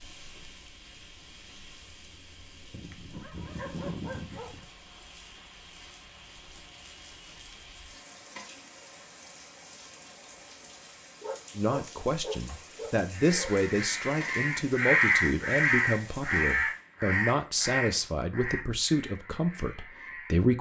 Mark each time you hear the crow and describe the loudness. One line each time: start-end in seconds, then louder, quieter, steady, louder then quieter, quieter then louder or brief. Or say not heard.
13.2-20.5 louder then quieter.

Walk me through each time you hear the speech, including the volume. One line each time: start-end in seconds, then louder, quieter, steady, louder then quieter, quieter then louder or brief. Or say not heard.
11.6-20.5 steady.